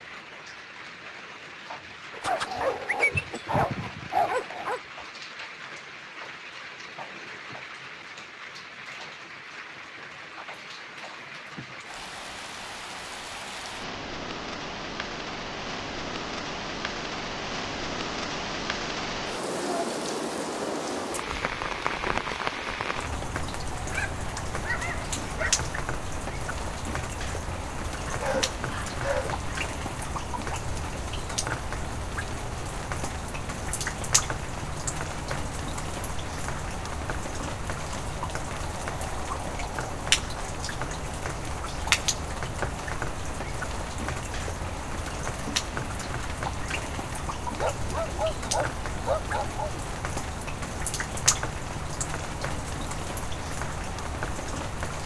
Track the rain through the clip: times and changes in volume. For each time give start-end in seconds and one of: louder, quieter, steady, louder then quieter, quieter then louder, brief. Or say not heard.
0.0-55.0 louder.